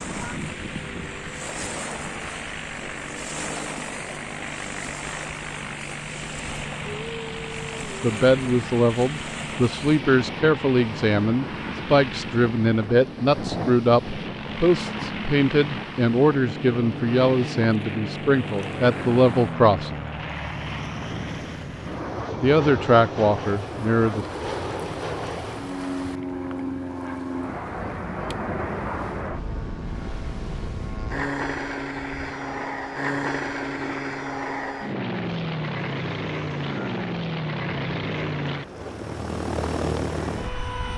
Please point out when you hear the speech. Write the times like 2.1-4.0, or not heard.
8.0-20.0, 22.4-24.2.